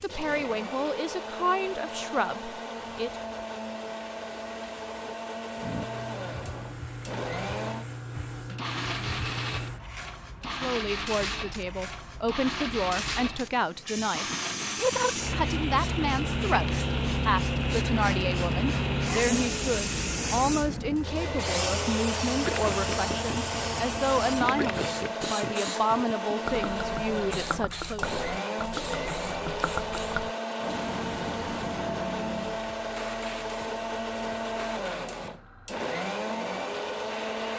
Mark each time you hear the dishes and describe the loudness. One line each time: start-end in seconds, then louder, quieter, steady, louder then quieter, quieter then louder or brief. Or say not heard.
not heard.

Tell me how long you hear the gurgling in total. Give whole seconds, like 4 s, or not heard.
8 s.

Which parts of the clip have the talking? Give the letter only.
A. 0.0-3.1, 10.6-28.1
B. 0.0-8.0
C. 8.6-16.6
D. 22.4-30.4
A.